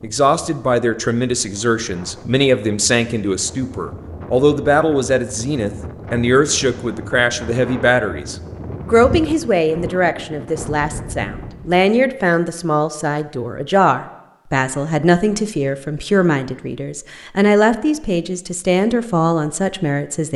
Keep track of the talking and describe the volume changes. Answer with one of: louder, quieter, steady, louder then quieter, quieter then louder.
steady.